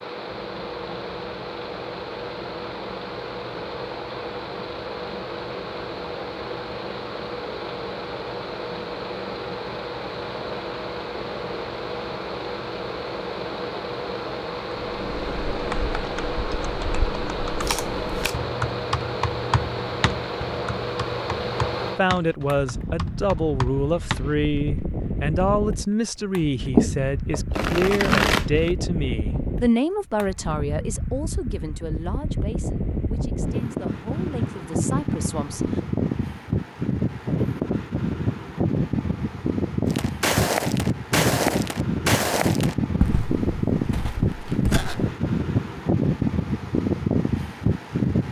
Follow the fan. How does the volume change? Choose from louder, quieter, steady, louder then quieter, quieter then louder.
louder.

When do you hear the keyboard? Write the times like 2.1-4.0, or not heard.
14.8-24.8.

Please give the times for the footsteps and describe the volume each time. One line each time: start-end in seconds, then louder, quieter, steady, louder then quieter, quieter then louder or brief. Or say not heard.
39.9-45.1 quieter.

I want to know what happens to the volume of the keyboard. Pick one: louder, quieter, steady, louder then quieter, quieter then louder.
steady.